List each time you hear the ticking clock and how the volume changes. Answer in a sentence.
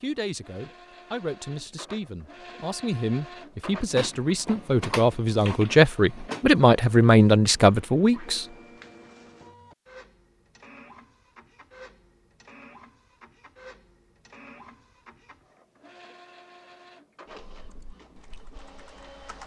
The ticking clock can't be heard in this clip.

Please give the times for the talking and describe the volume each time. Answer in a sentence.
You can hear the talking from 0.0 to 8.4 s, getting louder.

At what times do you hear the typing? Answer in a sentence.
You can hear the typing from 17.5 to 19.4 s.